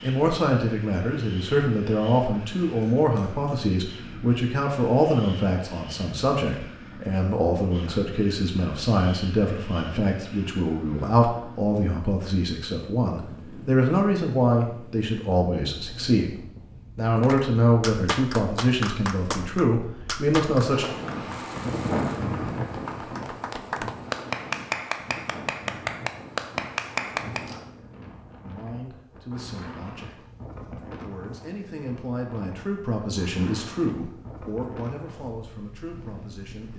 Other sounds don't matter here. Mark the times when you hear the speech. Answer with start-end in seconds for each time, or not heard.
0.0-20.9, 28.4-30.2, 31.0-36.7.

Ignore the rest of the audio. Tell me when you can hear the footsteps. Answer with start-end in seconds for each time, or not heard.
not heard.